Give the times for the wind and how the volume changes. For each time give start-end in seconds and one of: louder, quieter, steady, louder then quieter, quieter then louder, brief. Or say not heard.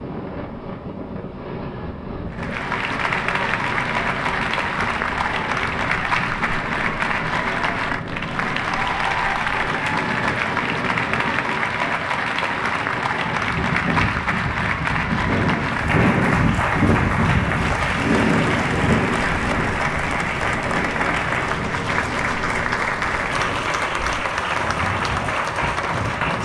0.0-26.4 louder then quieter.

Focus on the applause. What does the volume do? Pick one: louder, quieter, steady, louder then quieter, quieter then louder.
steady.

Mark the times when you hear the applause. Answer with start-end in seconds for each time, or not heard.
2.3-26.4.